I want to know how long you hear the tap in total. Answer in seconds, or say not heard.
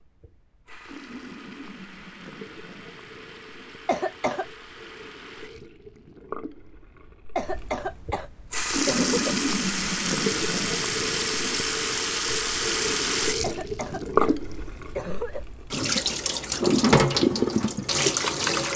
19 s.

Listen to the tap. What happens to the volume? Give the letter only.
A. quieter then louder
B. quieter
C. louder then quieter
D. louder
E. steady
D.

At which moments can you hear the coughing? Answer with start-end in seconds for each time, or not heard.
3.9-4.5, 7.3-9.3, 13.4-14.3, 14.9-15.4.